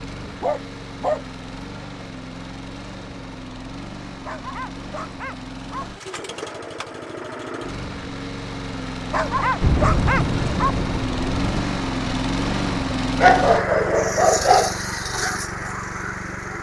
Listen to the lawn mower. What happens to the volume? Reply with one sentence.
The volume of the lawn mower goes up.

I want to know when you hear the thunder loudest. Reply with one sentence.
The loudest moment of the thunder is at 10 seconds.